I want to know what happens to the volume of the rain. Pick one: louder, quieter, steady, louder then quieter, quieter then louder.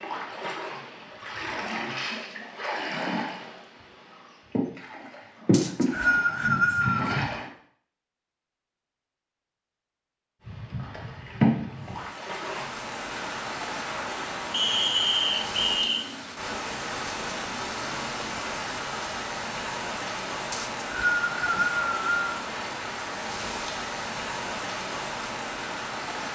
steady.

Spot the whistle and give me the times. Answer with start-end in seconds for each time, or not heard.
5.5-7.2, 14.5-16.1, 20.5-22.4.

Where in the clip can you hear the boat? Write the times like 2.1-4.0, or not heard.
0.0-7.5, 10.4-12.7.